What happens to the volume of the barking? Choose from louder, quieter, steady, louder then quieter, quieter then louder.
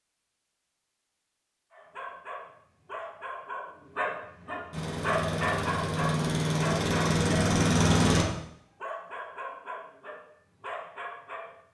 louder then quieter.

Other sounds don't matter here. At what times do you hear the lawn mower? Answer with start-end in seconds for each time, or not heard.
4.7-8.2.